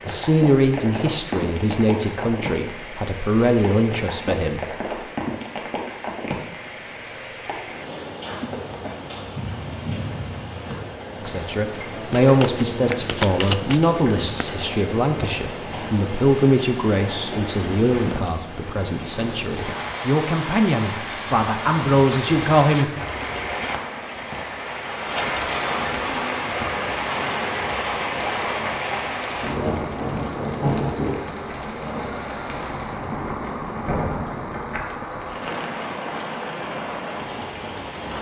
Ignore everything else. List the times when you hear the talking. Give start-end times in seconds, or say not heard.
0.1-4.6, 11.2-22.9.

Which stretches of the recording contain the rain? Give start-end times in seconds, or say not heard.
0.0-38.1.